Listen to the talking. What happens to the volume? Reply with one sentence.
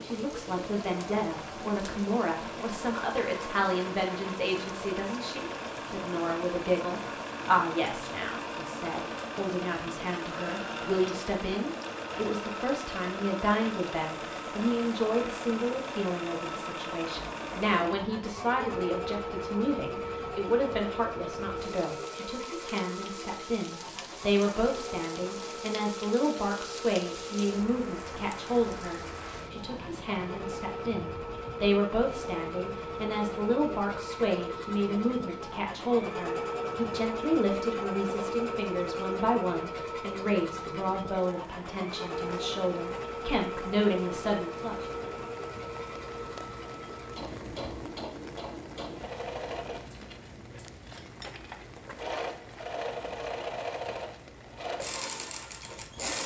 The loudness of the talking stays about the same.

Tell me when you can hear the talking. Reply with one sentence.
The talking can be heard from 0.0 to 44.9 s.